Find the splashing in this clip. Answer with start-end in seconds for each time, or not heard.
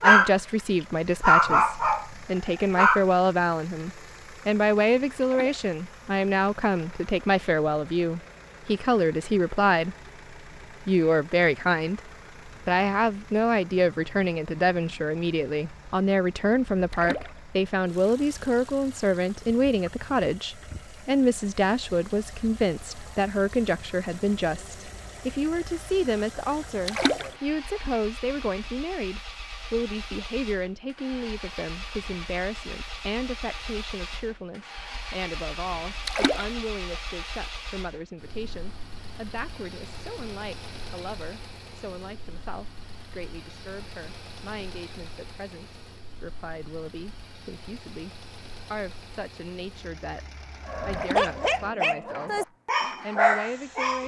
5.2-5.7, 16.9-17.4, 26.9-27.3, 36.0-36.5, 50.9-51.4.